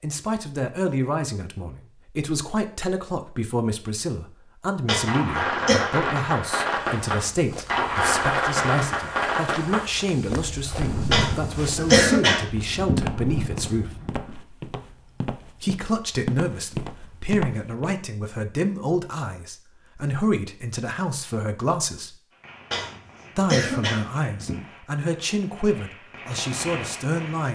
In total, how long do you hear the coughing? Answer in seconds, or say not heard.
5 s.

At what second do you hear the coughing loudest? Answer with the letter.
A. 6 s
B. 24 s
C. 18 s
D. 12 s
D.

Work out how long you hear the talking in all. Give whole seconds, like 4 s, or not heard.
25 s.